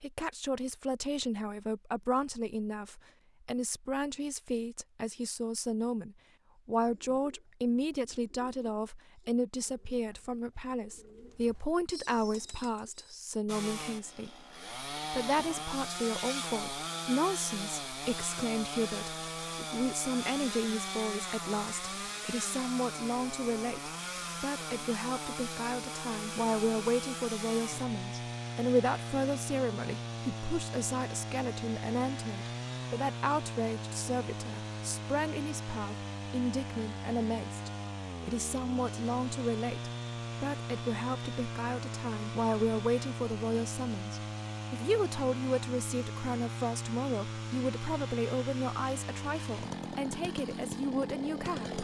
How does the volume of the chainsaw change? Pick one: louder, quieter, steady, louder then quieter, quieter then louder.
steady.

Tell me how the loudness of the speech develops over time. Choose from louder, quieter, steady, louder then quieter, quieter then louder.
steady.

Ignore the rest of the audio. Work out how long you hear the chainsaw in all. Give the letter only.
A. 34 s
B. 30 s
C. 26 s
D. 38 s
D.